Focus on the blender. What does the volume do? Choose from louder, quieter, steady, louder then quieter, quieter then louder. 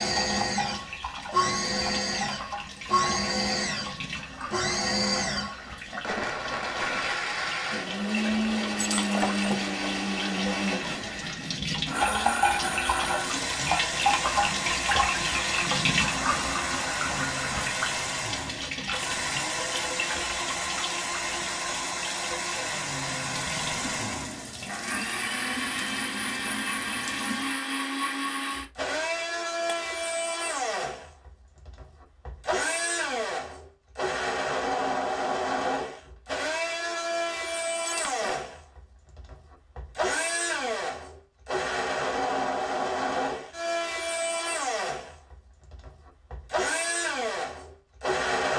steady.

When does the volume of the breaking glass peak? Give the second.
9 s.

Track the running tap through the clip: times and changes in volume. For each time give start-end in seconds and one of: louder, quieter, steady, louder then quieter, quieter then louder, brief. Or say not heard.
0.0-27.6 louder then quieter.